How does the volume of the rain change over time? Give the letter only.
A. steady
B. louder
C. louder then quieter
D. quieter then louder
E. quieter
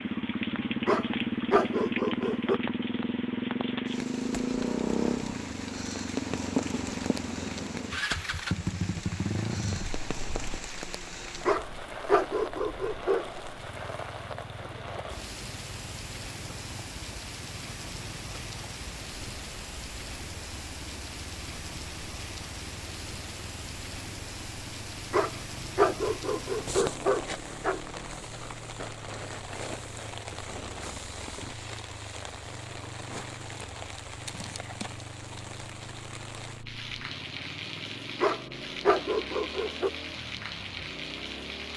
A.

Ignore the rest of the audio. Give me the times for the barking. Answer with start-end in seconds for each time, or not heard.
0.8-2.6, 11.4-13.4, 25.1-27.8, 38.2-39.9.